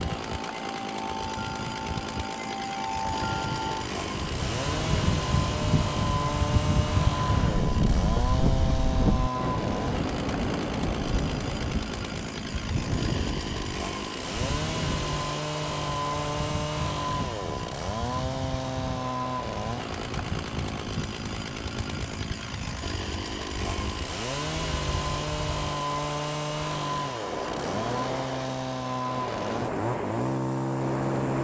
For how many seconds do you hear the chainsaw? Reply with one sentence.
The chainsaw can be heard for 31 seconds in total.